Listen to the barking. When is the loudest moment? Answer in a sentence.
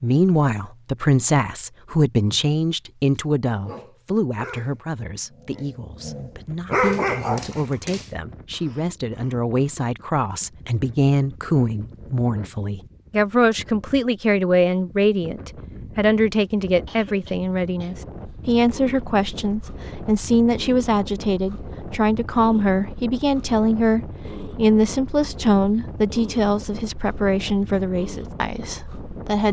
The loudest moment of the barking is at 7 seconds.